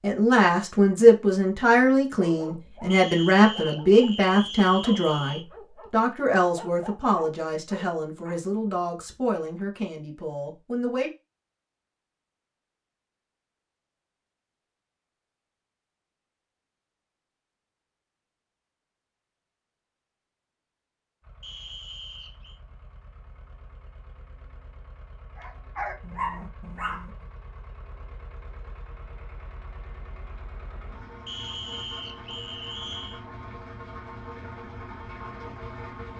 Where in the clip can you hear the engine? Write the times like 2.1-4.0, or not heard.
21.2-36.1.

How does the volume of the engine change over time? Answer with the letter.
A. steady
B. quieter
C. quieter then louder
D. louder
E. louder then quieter
D.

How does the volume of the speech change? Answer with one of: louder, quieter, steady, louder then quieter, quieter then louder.
quieter.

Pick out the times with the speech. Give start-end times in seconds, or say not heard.
0.0-11.1.